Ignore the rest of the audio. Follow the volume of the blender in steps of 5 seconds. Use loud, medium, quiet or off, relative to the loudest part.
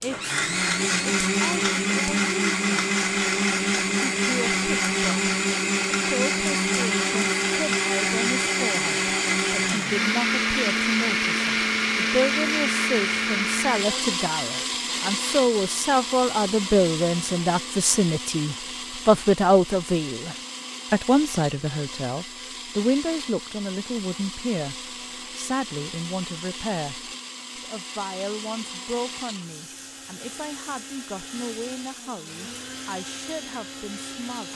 loud, loud, loud, medium, quiet, quiet, quiet.